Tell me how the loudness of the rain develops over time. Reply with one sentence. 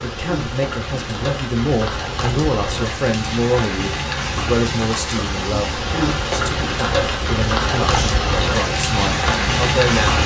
The loudness of the rain goes up.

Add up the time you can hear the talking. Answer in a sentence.
The talking can be heard for 10 seconds in total.